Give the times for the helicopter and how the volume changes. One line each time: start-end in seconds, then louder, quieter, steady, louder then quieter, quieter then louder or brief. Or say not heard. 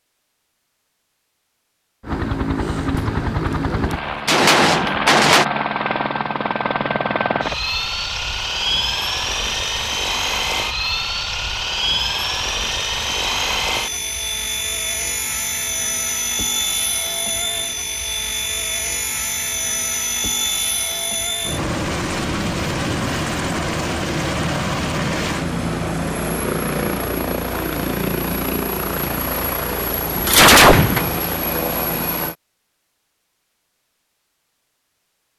2.0-32.4 steady.